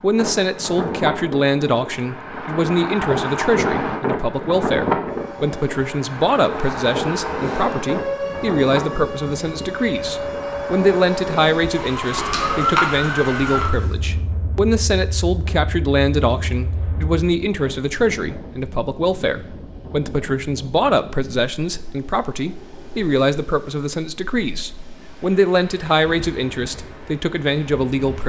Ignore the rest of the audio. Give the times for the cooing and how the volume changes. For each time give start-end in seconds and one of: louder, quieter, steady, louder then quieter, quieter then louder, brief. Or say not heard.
not heard.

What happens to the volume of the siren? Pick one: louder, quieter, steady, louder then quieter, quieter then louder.
louder then quieter.